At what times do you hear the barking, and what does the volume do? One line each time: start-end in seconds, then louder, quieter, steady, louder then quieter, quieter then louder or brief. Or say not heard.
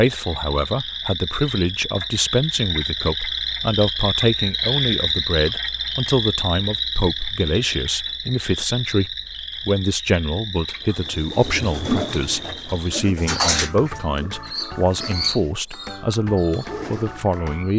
not heard.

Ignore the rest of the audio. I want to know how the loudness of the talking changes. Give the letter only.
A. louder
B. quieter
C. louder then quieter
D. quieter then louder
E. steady
E.